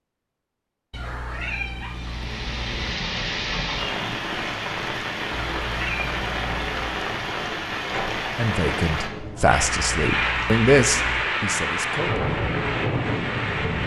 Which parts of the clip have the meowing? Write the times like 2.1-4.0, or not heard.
0.9-3.0, 5.3-6.8, 9.5-11.3.